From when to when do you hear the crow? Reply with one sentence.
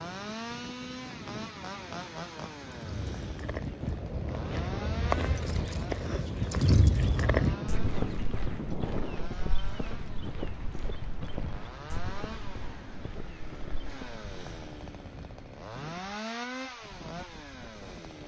The crow can't be heard in this clip.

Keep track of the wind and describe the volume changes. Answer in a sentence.
The loudness of the wind goes up, then down.